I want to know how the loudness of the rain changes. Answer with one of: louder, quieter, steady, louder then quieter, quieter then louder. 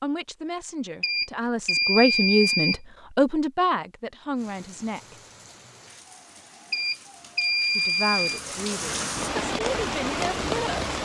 louder.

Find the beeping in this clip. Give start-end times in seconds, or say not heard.
1.0-2.8, 6.7-8.4.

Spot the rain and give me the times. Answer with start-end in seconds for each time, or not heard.
4.3-11.0.